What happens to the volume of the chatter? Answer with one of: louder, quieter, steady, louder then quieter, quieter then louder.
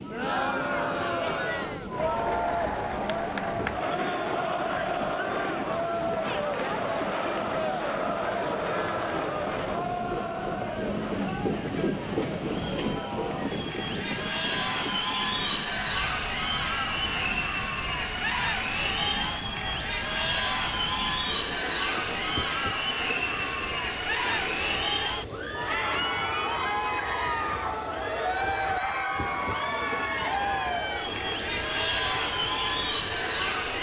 steady.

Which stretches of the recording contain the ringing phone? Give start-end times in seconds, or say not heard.
not heard.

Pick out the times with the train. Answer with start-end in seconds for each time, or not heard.
0.0-33.7.